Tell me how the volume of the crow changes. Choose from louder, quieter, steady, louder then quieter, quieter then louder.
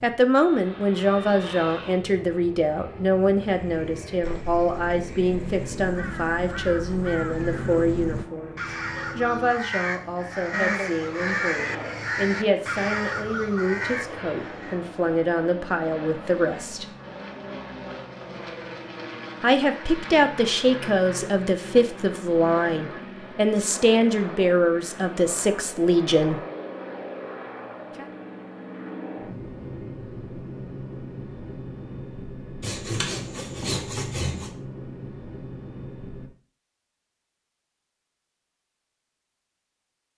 louder.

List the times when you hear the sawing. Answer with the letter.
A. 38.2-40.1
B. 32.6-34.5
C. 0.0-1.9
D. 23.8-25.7
B.